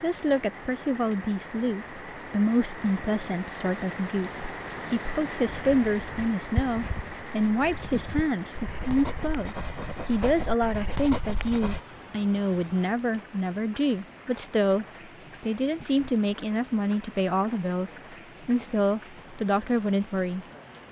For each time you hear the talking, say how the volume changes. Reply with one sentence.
You can hear the talking from 0.0 to 20.8 s, at a steady volume.